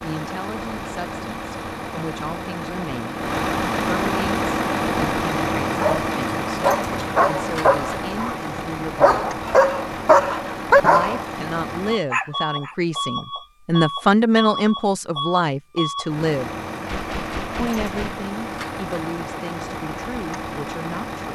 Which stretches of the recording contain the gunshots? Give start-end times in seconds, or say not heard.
16.9-18.3.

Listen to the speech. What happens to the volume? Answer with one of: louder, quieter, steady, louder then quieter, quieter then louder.
louder then quieter.